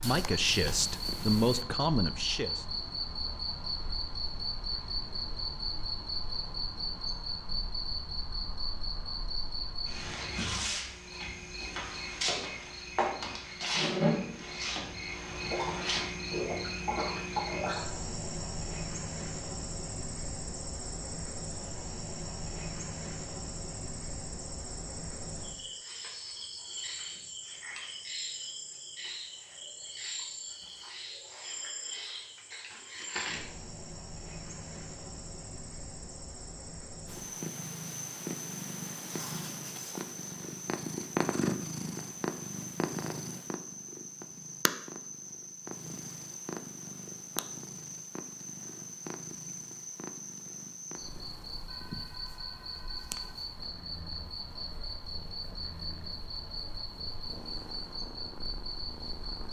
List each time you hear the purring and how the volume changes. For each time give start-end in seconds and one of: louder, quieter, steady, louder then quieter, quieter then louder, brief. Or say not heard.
0.0-1.6 brief
37.0-59.4 quieter.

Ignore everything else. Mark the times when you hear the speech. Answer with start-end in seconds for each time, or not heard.
0.0-2.6.